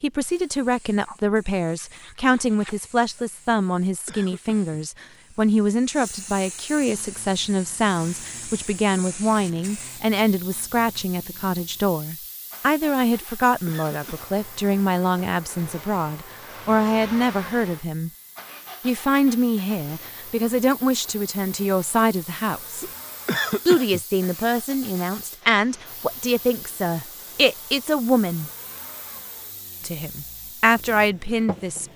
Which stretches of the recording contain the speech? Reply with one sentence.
The speech can be heard from 0.0 to 18.1 s, from 18.8 to 22.9 s, from 23.6 to 28.5 s and from 29.8 to 31.9 s.